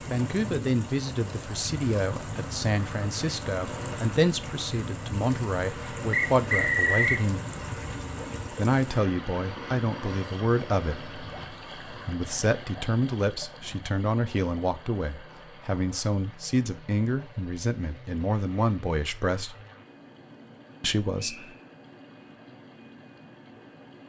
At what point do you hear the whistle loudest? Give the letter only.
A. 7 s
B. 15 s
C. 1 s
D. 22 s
A.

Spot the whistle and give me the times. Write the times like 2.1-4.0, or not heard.
6.1-7.2, 21.1-21.6.